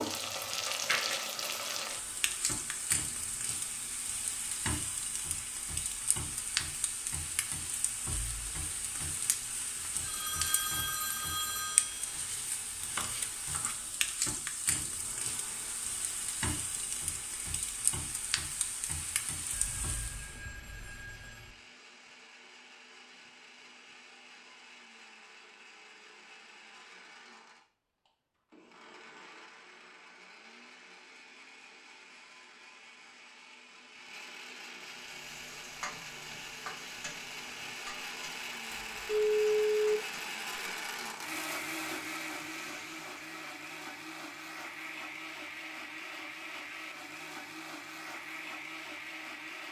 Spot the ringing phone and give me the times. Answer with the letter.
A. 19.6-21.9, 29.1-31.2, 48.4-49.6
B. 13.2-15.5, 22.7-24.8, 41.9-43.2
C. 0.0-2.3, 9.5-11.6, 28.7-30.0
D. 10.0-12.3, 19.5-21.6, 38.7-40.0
D.